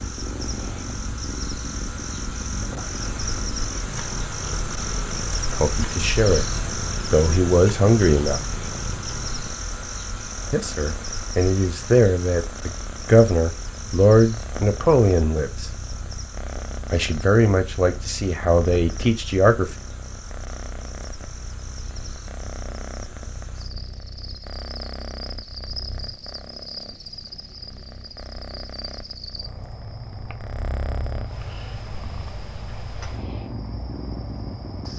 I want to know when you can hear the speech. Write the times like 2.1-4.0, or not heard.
5.5-8.4, 10.5-15.7, 16.9-19.7.